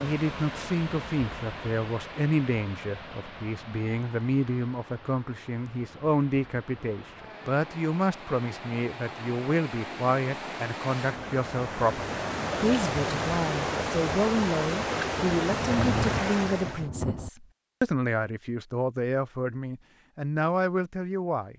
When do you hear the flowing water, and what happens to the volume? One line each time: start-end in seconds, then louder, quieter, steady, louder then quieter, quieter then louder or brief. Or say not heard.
0.0-16.9 quieter then louder.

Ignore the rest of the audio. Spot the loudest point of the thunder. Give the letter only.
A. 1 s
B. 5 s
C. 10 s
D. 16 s
D.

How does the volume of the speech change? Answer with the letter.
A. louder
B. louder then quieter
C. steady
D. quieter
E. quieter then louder
C.